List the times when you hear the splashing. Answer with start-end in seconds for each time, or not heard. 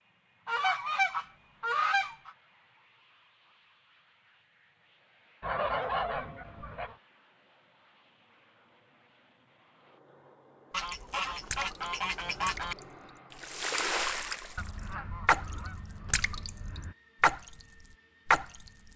11.0-18.9.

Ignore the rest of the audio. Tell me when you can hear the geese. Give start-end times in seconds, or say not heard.
0.5-2.3, 5.4-7.0, 10.7-12.8, 14.6-16.9.